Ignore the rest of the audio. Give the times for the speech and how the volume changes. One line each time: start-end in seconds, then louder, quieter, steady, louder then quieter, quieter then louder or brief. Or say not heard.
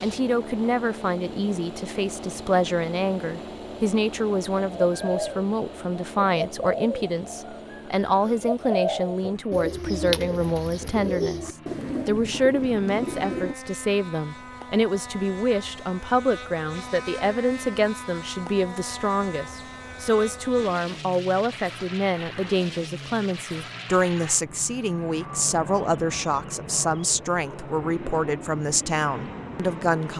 0.0-30.1 steady.